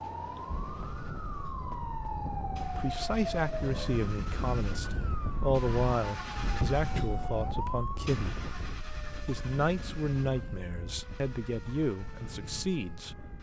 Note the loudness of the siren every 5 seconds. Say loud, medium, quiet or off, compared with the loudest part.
loud, loud, quiet.